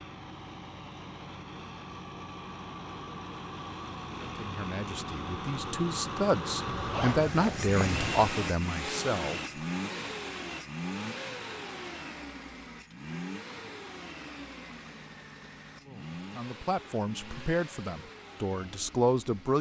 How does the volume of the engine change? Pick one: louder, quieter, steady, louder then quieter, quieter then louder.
louder then quieter.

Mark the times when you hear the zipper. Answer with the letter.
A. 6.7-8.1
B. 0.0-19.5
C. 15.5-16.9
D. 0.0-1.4
A.